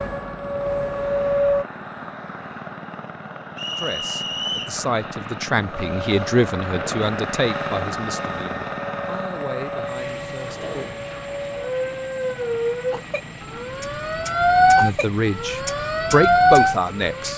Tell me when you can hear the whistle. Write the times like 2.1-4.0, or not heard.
3.5-4.8.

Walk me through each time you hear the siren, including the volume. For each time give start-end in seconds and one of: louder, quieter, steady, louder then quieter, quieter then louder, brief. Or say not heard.
0.0-1.6 brief
5.7-17.3 louder.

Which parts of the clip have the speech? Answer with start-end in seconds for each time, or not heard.
3.8-10.8, 14.8-17.3.